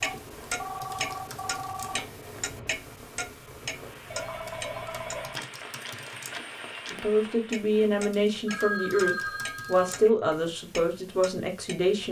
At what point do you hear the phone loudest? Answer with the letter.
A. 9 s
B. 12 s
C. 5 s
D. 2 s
A.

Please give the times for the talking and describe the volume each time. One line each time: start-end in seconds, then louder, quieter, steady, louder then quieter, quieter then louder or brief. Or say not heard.
6.9-12.0 steady.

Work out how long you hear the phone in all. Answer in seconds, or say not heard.
5 s.